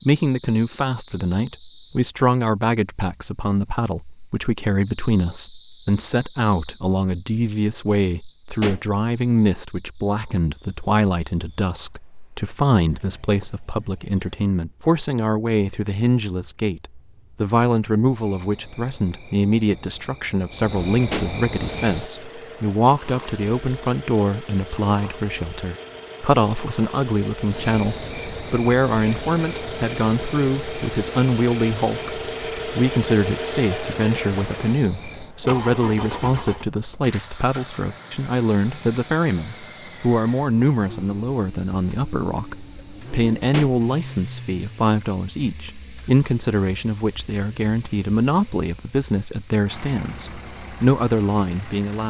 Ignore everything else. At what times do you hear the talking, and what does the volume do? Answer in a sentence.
You can hear the talking from 0.1 to 52.0 s, at a steady volume.